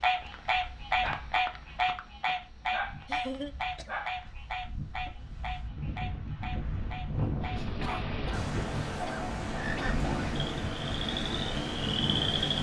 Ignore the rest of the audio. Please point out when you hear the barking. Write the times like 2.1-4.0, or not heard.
0.0-5.3.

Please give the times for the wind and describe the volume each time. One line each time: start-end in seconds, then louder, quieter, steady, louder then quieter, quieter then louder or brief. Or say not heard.
0.0-12.5 louder.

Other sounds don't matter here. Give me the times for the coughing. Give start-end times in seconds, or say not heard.
3.0-4.0, 7.5-9.9.